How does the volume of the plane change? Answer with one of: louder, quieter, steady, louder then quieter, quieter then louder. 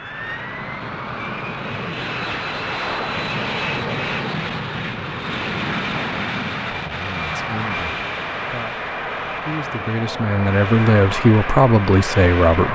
steady.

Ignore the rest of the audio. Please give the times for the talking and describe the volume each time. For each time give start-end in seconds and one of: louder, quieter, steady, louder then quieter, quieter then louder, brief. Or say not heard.
6.8-12.7 louder.